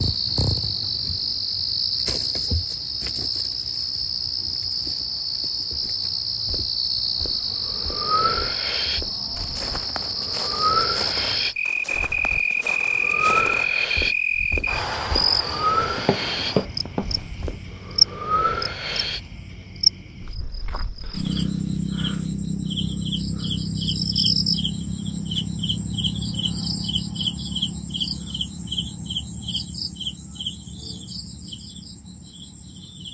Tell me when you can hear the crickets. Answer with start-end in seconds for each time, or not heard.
0.0-33.0.